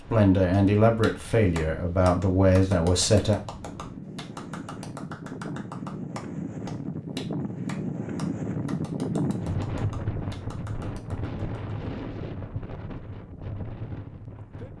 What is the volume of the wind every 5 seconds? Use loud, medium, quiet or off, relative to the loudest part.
medium, loud, medium.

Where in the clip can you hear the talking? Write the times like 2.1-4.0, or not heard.
0.0-3.4.